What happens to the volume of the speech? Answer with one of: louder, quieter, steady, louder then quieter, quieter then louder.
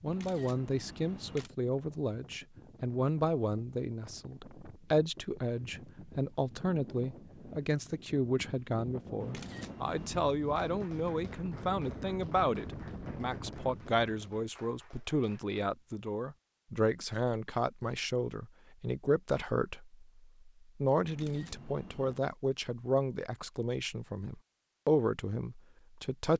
steady.